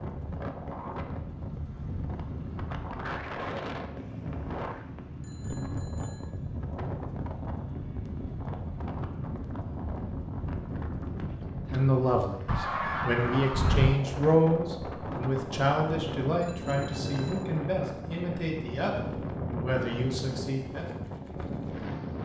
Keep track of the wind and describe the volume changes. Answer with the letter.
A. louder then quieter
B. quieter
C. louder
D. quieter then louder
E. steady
E.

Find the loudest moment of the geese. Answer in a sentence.
The volume of the geese peaks at 14 seconds.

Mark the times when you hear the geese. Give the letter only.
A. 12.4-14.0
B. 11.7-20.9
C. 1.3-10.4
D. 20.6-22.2
A.